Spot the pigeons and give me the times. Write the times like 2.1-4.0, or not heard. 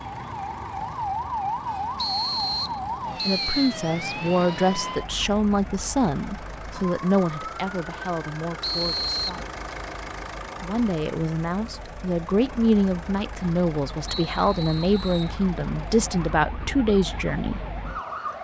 not heard.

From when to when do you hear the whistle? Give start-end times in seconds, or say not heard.
1.9-3.8, 8.6-9.4, 14.1-15.3.